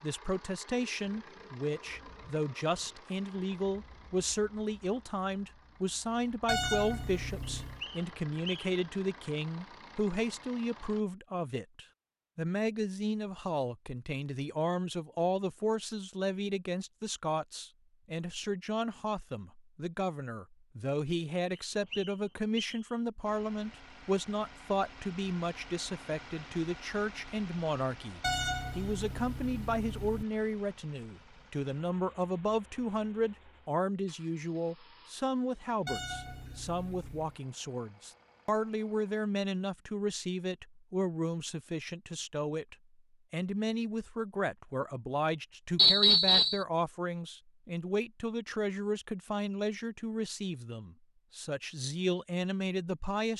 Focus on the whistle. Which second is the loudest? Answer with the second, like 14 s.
46 s.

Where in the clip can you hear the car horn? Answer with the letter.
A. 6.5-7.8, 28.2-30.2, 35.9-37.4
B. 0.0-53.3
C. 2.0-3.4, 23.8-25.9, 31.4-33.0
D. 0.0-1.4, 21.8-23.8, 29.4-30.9
A.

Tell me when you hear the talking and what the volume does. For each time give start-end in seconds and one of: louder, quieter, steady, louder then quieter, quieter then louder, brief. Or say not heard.
0.0-53.3 steady.